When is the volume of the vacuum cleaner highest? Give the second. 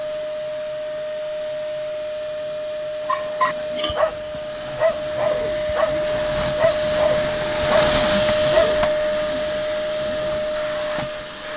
8 s.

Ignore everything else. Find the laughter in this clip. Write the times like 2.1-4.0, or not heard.
3.4-4.0.